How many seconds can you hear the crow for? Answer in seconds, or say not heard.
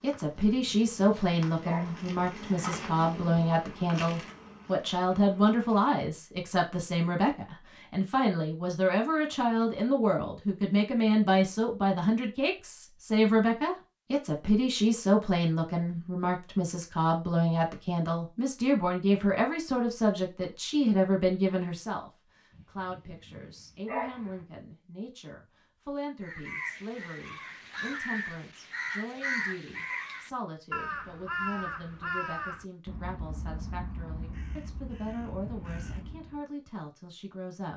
10 s.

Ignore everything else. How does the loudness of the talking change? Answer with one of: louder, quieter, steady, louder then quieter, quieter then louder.
quieter.